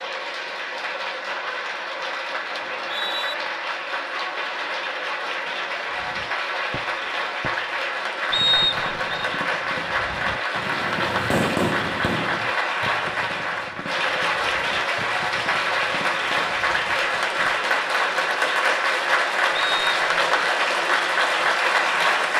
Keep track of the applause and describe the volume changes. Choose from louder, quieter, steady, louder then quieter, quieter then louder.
louder.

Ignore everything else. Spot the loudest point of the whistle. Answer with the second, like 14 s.
9 s.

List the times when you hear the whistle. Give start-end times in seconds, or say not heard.
2.6-3.4, 8.3-9.2, 19.5-20.5.